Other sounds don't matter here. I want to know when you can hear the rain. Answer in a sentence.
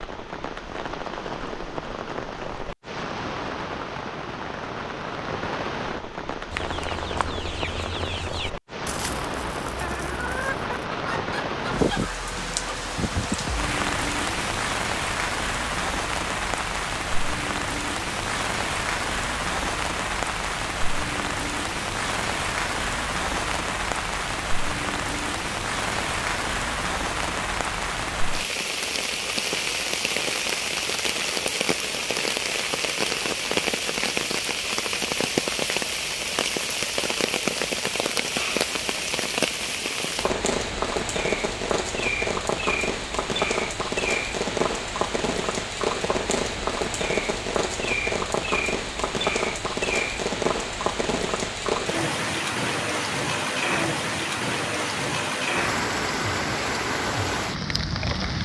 You can hear the rain from 0.0 to 58.4 s.